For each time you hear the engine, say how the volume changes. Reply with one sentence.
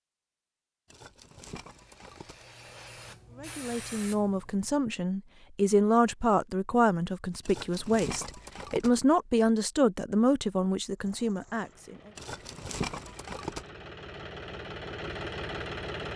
You can hear the engine from 10.9 to 16.1 s, getting louder.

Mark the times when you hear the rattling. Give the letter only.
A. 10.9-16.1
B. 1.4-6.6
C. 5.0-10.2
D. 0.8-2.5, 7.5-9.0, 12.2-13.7
D.